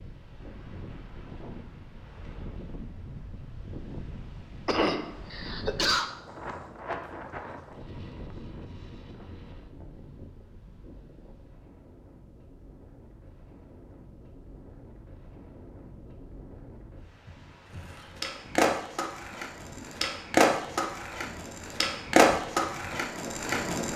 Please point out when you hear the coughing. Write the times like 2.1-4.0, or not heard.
4.7-6.1.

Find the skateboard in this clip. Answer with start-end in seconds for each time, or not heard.
17.9-23.9.